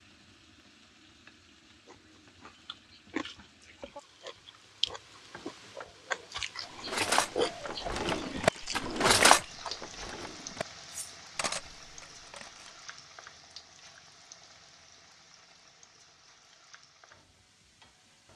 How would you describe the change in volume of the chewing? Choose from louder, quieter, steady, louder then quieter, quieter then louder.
louder then quieter.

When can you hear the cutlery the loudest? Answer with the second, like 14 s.
9 s.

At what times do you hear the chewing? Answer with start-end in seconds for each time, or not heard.
1.9-9.8.